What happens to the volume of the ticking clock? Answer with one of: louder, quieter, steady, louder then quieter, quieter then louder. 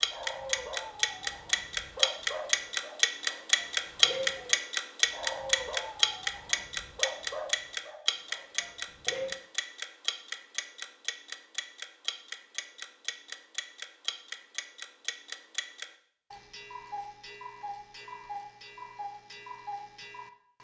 quieter.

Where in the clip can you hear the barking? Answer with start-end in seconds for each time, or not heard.
0.1-9.3.